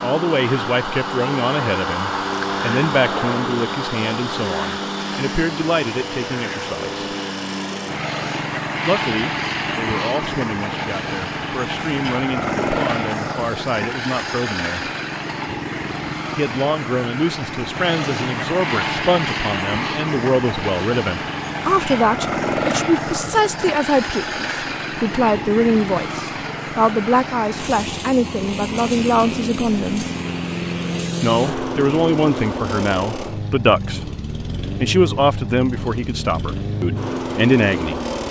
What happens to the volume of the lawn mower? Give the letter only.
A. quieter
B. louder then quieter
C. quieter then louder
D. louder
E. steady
E.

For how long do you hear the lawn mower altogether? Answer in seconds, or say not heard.
38 s.